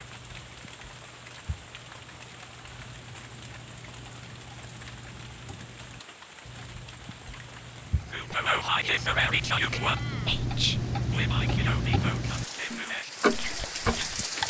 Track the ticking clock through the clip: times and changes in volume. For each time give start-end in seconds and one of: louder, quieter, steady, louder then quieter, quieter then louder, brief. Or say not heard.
0.0-14.4 louder.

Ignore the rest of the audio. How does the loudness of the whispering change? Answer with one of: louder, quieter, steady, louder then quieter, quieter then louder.
quieter.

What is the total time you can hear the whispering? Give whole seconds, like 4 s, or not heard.
6 s.